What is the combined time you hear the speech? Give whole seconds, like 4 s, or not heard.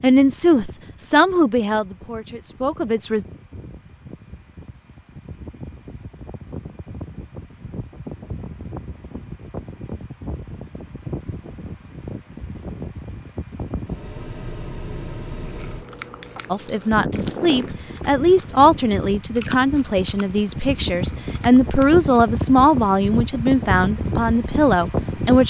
12 s.